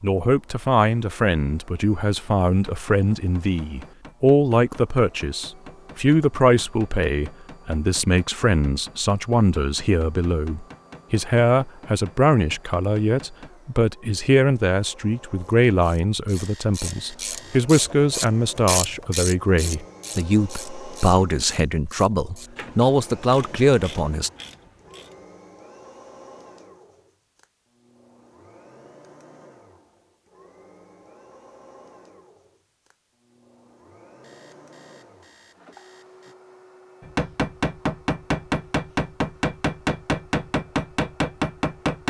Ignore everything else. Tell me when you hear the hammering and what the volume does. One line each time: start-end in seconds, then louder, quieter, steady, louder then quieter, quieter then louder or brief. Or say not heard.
2.6-13.5 steady
37.0-42.0 steady.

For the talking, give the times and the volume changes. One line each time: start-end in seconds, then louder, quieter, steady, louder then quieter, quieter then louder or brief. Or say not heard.
0.0-24.3 steady.